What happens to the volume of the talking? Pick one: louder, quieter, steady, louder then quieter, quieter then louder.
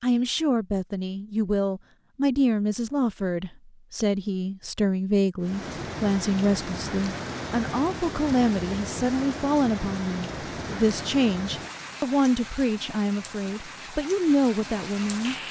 steady.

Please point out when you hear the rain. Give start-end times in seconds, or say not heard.
5.4-15.4.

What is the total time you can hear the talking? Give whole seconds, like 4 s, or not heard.
15 s.